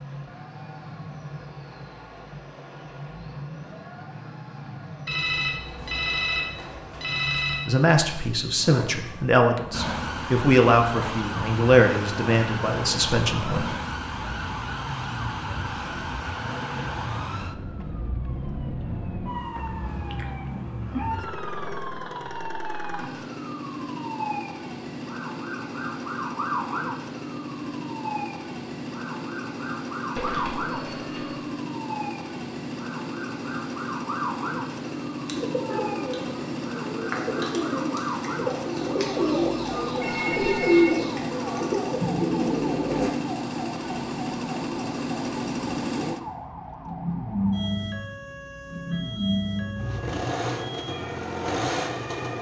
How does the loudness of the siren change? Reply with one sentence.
The loudness of the siren goes down.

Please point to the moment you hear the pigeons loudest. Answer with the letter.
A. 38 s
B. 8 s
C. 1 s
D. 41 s
D.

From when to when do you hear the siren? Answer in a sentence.
The siren can be heard from 9.7 to 52.3 s.